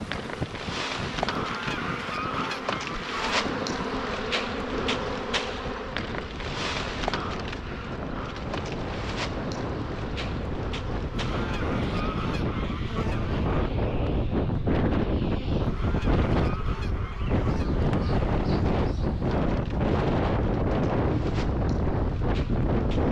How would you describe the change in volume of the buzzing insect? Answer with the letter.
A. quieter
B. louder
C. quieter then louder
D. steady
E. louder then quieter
A.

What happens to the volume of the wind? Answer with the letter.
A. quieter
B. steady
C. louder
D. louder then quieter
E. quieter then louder
C.